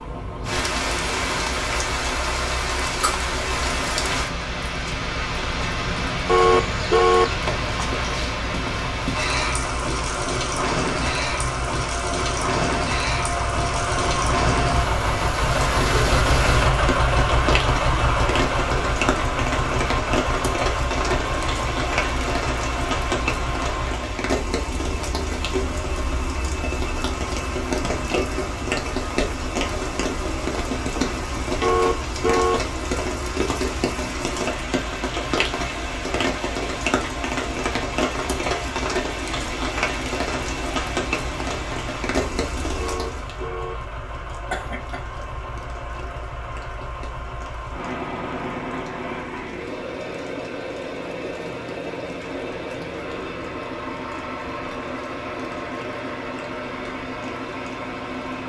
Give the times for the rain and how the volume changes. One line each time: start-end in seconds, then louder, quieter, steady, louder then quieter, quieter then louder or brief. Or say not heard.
0.0-58.4 quieter.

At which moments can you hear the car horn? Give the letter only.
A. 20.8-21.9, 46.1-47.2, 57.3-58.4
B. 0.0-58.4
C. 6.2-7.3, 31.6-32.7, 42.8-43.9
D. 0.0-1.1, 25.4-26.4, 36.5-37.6
C.